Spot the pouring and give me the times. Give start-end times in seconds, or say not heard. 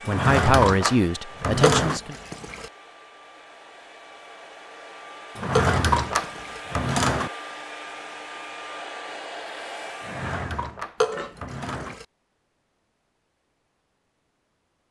1.6-2.7, 5.5-6.6, 11.0-12.1.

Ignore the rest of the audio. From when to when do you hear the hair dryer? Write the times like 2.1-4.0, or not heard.
0.0-11.6.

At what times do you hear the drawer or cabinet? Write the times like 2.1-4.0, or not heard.
0.1-2.0, 5.3-7.3, 10.0-11.9.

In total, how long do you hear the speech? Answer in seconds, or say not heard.
2 s.